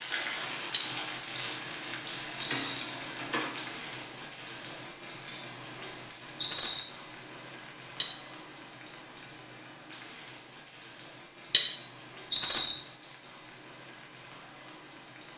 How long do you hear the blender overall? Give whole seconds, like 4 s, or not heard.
not heard.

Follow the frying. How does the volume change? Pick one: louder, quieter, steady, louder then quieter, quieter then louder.
quieter.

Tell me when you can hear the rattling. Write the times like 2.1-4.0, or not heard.
2.4-2.9, 6.4-6.8, 12.3-12.8.